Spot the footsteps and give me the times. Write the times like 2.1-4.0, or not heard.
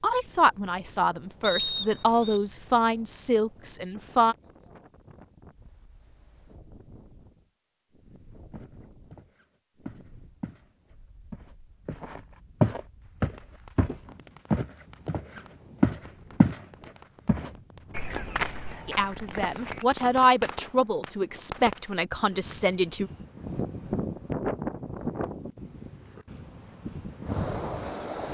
8.5-10.7, 11.3-16.6, 17.2-19.9.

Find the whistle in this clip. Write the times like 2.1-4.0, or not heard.
1.4-2.4.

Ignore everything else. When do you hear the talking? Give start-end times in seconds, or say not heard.
0.0-4.3, 18.9-23.1.